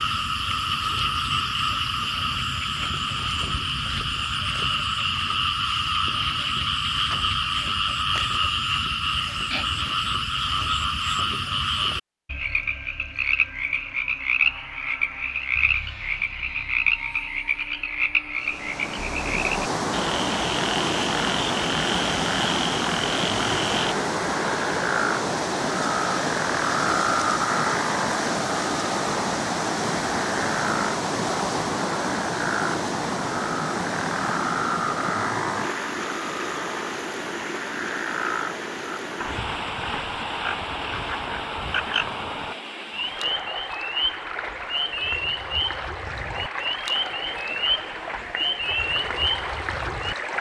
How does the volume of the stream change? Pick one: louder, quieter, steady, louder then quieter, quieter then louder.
quieter.